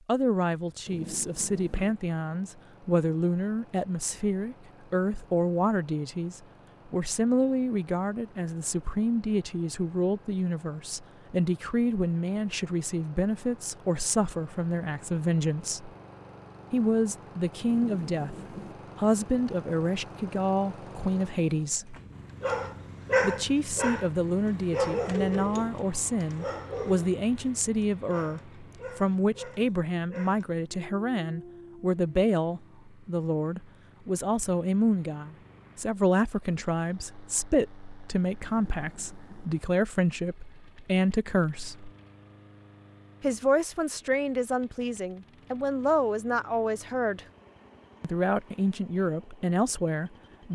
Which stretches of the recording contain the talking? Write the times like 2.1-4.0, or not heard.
0.1-15.9, 16.7-18.4, 18.9-21.9, 23.2-41.9, 43.2-47.2, 48.0-50.4.